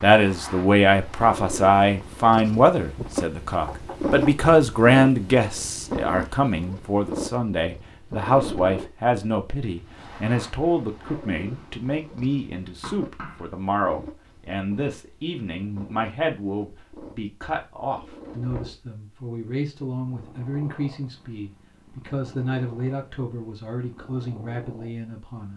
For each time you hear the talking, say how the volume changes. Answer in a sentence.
You can hear the talking from 0.0 to 25.5 s, getting quieter.